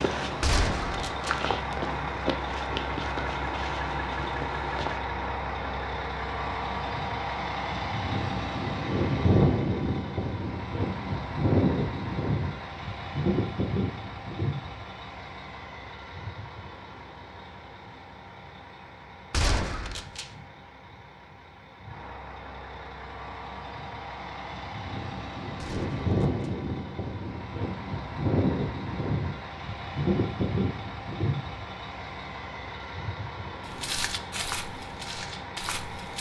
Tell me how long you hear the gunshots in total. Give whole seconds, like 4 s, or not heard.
3 s.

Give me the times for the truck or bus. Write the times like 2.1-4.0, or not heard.
0.0-36.1.